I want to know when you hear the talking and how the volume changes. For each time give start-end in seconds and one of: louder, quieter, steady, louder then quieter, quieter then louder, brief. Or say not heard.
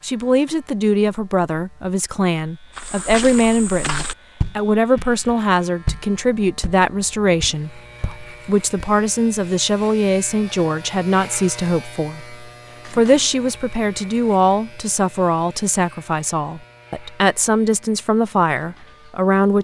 0.0-19.5 steady.